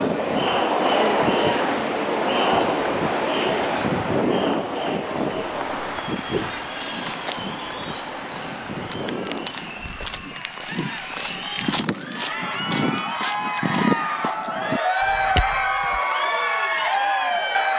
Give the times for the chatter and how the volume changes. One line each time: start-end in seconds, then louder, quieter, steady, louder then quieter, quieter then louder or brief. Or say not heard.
0.0-17.7 quieter then louder.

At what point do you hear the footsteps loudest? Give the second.
14 s.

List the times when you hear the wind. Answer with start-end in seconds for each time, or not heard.
0.0-10.2.